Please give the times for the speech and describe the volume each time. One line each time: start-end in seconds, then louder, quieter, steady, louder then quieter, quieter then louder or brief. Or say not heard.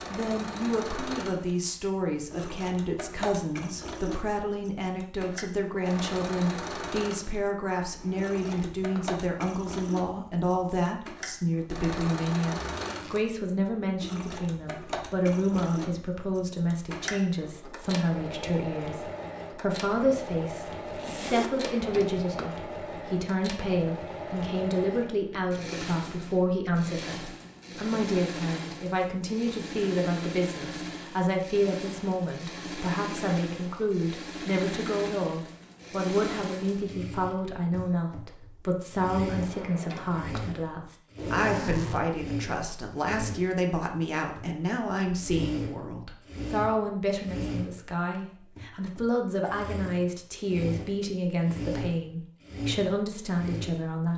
0.1-54.1 steady.